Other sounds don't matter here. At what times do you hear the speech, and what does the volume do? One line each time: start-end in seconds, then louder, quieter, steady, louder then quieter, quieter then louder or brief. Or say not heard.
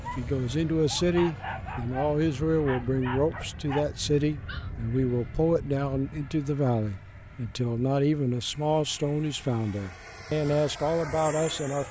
0.0-11.8 steady.